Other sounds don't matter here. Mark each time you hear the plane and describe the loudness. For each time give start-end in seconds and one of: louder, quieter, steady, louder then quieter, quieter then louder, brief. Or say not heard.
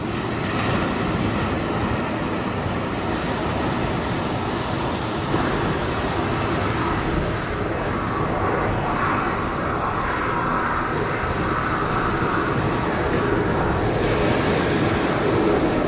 5.2-15.8 steady.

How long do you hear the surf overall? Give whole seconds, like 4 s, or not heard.
16 s.